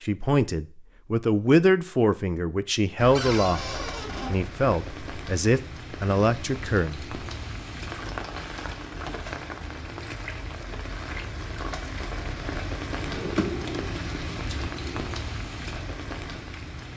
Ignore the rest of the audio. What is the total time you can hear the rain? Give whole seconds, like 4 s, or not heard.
14 s.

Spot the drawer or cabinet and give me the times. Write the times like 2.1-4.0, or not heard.
3.1-4.3, 12.9-15.2.